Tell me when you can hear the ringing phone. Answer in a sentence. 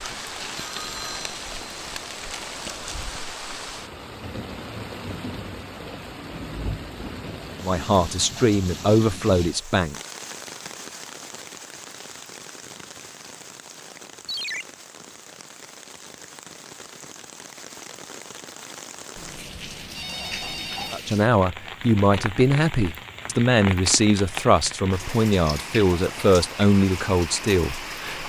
The ringing phone can be heard from 0.7 to 1.9 s, from 14.2 to 14.7 s and from 19.1 to 21.0 s.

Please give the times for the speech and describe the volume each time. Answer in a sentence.
The speech can be heard briefly from 7.6 to 9.9 s; and from 20.9 to 28.2 s, at a steady volume.